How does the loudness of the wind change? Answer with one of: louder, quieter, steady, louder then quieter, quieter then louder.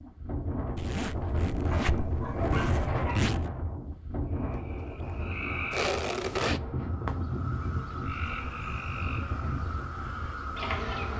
quieter.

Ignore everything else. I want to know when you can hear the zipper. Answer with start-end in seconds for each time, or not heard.
0.8-3.5, 5.7-6.6.